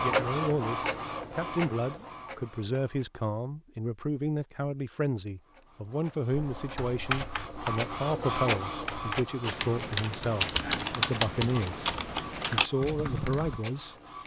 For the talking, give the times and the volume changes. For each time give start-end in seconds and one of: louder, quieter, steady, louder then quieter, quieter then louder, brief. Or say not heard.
0.0-13.9 steady.